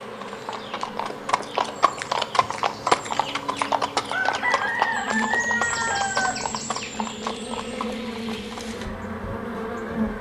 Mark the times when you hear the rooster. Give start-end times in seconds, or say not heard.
3.2-6.9.